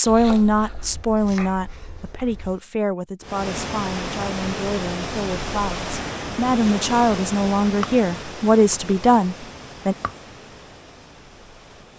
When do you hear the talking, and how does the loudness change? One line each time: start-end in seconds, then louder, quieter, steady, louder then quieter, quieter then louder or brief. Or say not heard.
0.0-9.9 quieter then louder.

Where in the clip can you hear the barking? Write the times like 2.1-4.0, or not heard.
not heard.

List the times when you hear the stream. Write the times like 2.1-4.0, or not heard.
3.2-11.9.